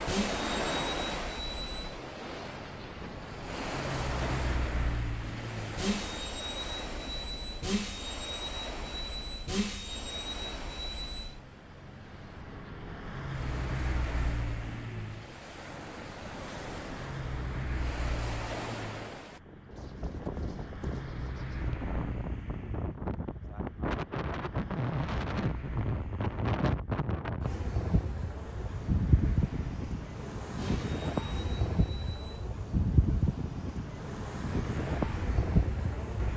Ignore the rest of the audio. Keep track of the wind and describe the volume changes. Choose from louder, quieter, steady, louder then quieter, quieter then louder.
quieter then louder.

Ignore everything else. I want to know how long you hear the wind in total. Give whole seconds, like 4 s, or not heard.
36 s.